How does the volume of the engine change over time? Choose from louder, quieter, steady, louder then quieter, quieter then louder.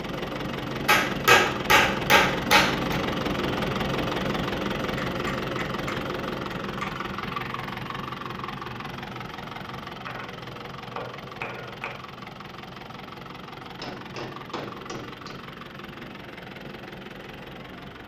quieter.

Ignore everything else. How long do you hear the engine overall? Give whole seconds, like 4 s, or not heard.
18 s.